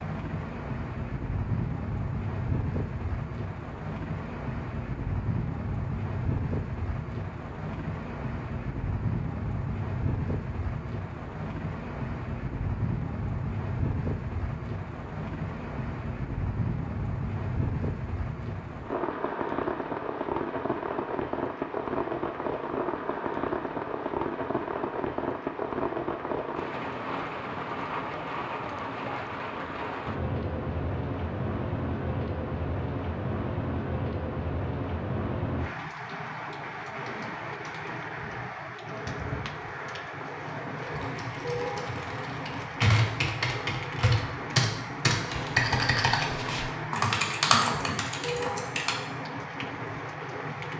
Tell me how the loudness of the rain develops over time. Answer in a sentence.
The loudness of the rain stays about the same.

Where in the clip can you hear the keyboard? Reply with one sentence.
You can hear the keyboard from 40.8 to 49.0 s.